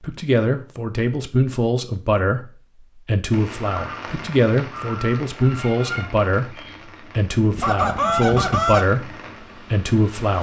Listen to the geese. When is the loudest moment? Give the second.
8 s.